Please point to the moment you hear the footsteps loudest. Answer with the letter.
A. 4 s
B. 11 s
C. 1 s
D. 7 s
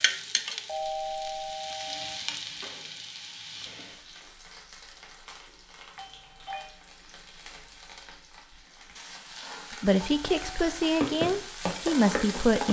B.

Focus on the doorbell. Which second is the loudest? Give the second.
1 s.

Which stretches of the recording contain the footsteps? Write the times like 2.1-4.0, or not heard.
11.0-12.6.